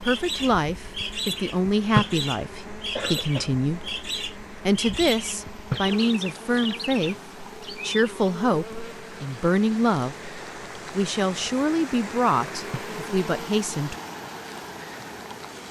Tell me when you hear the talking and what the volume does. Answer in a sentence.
The talking can be heard from 0.0 to 13.9 s, at a steady volume.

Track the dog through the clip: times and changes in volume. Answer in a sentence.
You can't hear the dog here.